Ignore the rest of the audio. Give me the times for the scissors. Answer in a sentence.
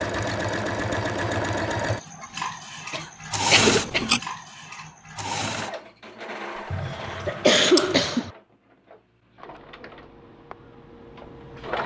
You can hear the scissors from 3.6 to 4.2 s and from 7.0 to 8.0 s.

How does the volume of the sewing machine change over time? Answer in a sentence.
The volume of the sewing machine goes down.